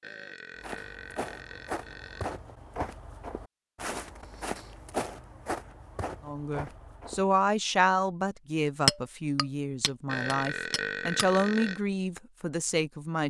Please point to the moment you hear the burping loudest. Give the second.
11 s.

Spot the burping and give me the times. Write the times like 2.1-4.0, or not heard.
0.0-2.4, 10.1-11.8.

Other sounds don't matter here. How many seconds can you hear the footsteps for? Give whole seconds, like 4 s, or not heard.
7 s.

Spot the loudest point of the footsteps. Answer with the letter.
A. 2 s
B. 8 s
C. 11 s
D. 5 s
D.